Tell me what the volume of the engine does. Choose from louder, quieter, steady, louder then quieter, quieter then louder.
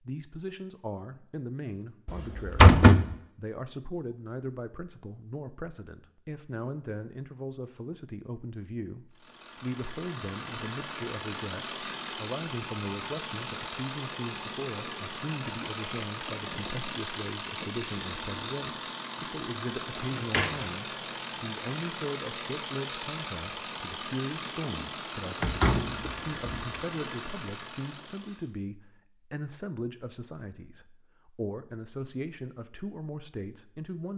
steady.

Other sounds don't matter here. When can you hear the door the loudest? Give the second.
3 s.